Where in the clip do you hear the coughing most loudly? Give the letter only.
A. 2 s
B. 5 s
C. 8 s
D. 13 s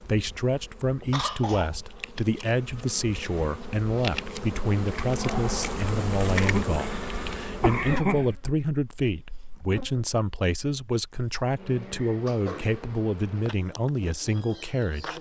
C.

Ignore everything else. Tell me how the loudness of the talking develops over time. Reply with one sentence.
The volume of the talking stays about the same.